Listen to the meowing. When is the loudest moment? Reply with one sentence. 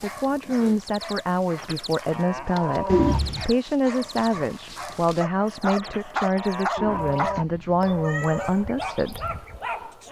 The loudest moment of the meowing is at 3 seconds.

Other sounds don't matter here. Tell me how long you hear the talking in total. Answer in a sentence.
The talking can be heard for 9 seconds in total.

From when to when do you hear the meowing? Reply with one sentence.
The meowing can be heard from 2.9 to 3.5 s and from 6.8 to 8.6 s.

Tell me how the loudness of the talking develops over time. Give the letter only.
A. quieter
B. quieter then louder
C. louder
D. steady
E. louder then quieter
D.